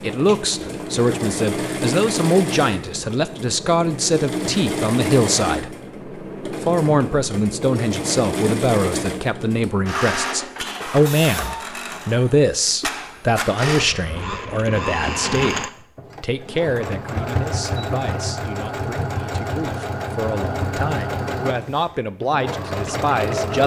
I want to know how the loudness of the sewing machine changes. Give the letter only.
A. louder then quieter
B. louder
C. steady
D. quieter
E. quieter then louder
C.